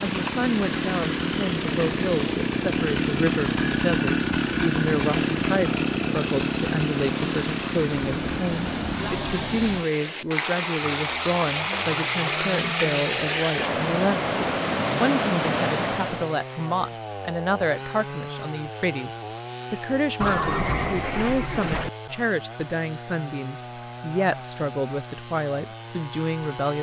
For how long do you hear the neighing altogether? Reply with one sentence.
You can hear the neighing for 2 seconds altogether.